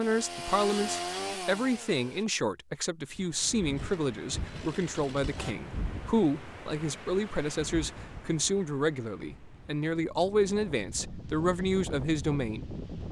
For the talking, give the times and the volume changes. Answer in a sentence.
The talking can be heard from 0.0 to 13.0 s, at a steady volume.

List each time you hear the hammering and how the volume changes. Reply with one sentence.
You can't hear the hammering here.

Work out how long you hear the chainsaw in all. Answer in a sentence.
You can hear the chainsaw for 4 seconds altogether.